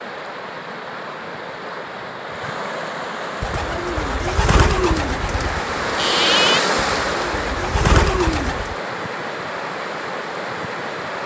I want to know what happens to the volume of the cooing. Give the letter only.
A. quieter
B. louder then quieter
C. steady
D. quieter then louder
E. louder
D.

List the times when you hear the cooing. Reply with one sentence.
You can hear the cooing from 3.4 to 8.8 s.